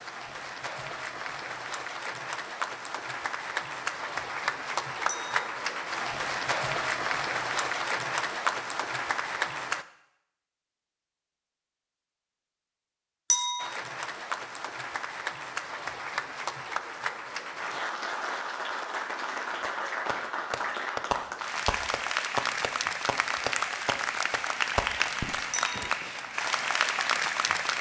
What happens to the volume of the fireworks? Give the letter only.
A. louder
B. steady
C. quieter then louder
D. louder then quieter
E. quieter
C.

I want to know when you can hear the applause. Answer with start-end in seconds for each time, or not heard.
0.0-9.8, 13.6-27.7.